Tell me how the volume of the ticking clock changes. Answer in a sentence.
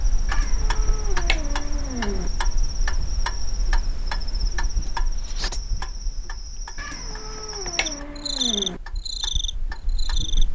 The loudness of the ticking clock goes down.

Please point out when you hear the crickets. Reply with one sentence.
The crickets can be heard from 0.0 to 10.4 s.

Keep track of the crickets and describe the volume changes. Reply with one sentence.
The volume of the crickets goes up.